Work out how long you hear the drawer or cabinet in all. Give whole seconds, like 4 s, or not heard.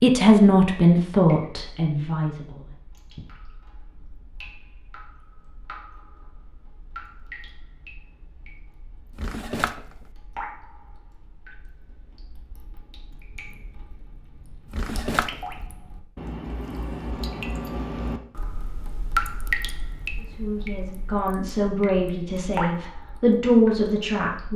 2 s.